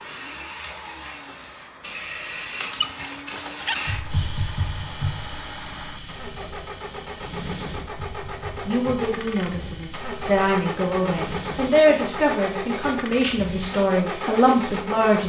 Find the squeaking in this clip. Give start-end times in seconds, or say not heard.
2.7-3.8.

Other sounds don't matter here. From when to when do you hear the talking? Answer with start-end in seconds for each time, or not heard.
8.7-15.2.